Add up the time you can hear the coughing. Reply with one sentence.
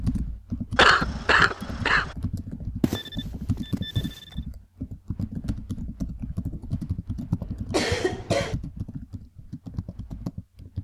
The coughing can be heard for 2 seconds in total.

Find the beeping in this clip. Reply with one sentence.
You can hear the beeping from 2.8 to 4.4 s.